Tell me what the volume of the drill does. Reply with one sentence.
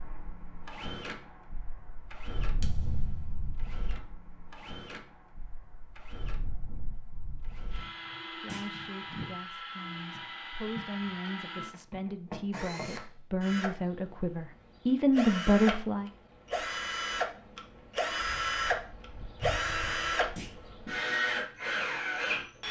The volume of the drill goes up.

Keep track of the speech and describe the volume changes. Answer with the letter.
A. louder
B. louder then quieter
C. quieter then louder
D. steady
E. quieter
A.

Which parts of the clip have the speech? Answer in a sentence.
You can hear the speech from 8.3 to 16.1 s.